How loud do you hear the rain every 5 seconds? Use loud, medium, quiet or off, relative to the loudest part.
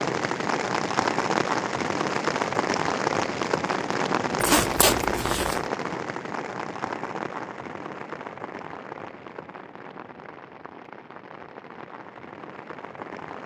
loud, medium, quiet.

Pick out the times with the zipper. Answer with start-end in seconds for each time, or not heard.
4.4-5.6.